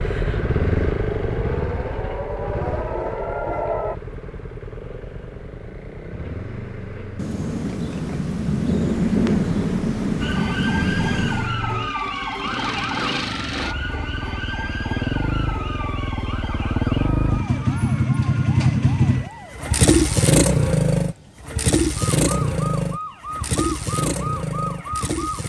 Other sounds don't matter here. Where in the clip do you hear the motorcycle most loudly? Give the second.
20 s.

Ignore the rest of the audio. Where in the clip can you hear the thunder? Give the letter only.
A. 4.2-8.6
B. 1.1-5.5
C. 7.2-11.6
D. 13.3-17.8
C.